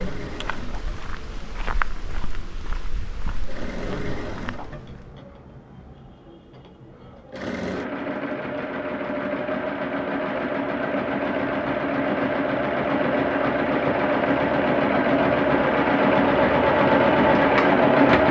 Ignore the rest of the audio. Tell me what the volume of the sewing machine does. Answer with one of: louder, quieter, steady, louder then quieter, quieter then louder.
louder.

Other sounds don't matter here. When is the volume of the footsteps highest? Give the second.
2 s.